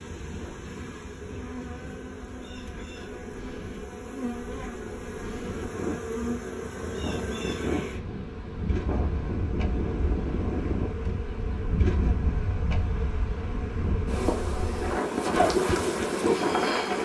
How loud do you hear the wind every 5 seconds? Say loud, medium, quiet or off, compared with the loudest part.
quiet, medium, medium, loud.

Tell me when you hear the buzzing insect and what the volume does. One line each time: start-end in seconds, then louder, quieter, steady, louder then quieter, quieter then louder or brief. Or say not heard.
0.0-16.9 louder.